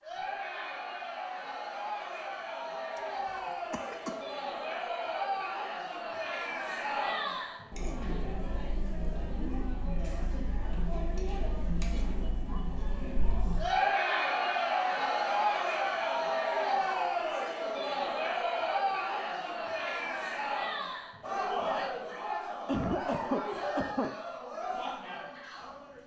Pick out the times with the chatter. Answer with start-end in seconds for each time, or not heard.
0.0-26.0.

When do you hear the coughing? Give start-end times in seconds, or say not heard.
3.7-4.2, 22.6-24.1.